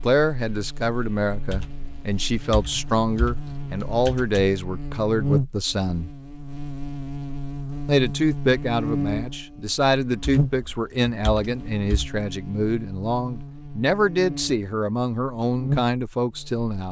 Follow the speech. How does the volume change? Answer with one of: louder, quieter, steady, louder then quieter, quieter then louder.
steady.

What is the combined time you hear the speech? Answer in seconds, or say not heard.
15 s.